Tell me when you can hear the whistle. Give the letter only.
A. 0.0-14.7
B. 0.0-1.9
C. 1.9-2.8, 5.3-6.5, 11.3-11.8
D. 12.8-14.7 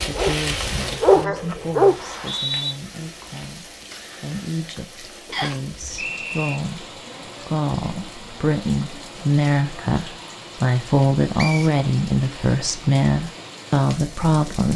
C.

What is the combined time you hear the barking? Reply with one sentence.
You can hear the barking for 2 seconds altogether.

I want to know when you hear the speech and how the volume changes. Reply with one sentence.
The speech can be heard from 0.0 to 14.7 s, getting louder.